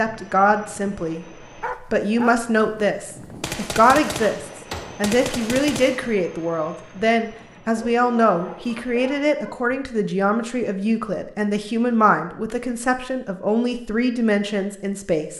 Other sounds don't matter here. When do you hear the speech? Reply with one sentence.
The speech can be heard from 0.0 to 15.3 s.